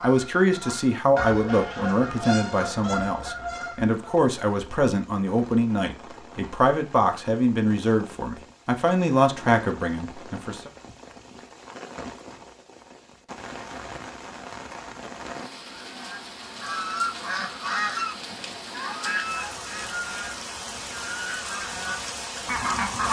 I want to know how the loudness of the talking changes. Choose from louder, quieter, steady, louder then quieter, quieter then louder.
steady.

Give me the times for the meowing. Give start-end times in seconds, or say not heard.
not heard.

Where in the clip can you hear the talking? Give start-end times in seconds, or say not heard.
0.0-10.7.